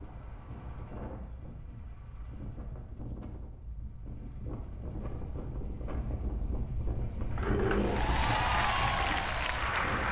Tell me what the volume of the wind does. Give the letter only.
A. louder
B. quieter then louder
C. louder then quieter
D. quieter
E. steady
A.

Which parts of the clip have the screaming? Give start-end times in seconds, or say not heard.
7.4-8.1.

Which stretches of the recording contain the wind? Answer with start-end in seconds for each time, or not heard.
0.0-10.0.